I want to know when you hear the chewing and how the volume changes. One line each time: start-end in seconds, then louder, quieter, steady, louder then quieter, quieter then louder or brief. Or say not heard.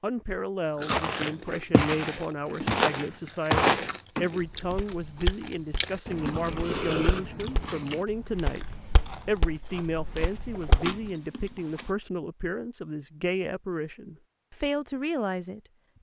0.7-11.9 louder then quieter.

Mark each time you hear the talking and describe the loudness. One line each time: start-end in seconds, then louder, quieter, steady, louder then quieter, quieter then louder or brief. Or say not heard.
0.0-15.6 steady.